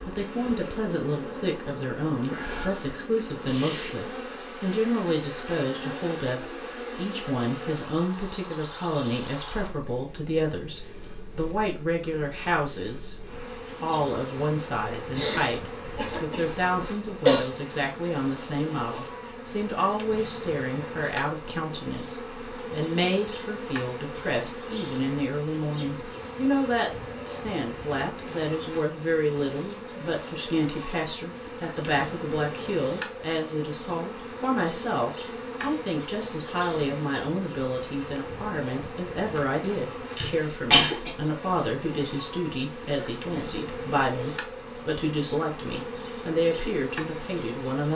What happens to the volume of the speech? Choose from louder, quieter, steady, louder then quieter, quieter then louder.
steady.